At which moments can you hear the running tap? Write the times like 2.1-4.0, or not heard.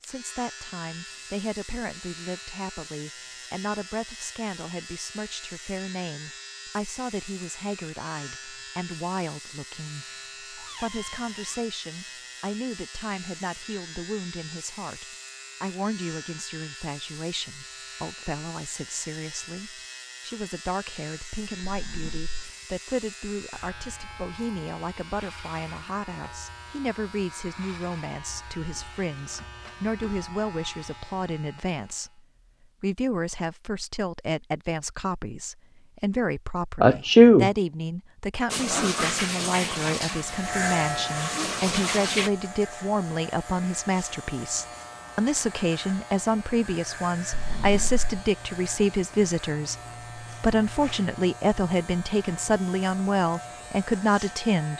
38.5-42.3.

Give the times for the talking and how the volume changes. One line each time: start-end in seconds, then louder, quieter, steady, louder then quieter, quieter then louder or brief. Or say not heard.
0.0-32.2 steady
32.8-54.7 louder.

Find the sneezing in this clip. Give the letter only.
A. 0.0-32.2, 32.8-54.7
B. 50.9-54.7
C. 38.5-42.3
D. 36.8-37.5
D.